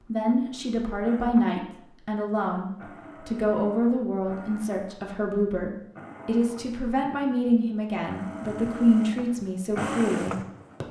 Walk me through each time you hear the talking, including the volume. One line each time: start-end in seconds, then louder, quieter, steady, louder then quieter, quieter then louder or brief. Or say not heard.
0.1-10.8 steady.